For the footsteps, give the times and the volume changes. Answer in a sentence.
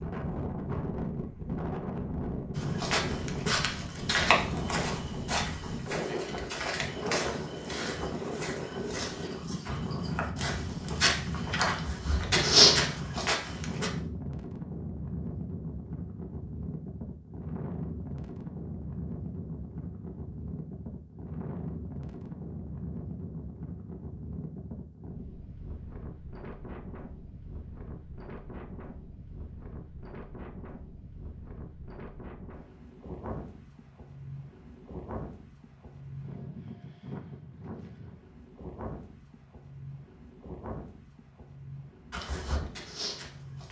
The footsteps can be heard from 2.5 to 13.9 s, getting quieter then louder; and briefly from 42.1 to 43.6 s.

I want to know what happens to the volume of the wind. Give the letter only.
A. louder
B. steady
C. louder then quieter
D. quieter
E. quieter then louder
D.